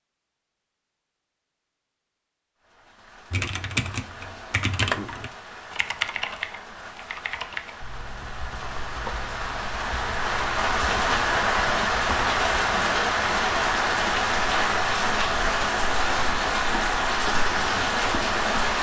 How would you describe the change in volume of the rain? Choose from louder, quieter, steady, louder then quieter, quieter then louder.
louder.